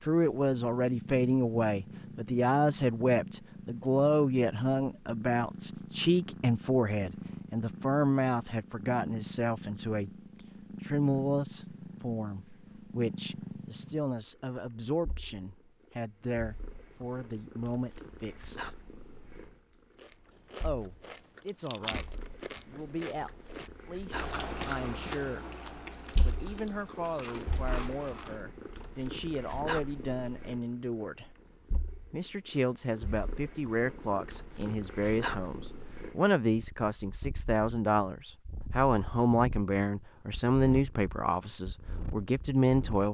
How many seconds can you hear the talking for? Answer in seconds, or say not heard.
39 s.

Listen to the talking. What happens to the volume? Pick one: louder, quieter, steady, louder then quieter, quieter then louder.
quieter then louder.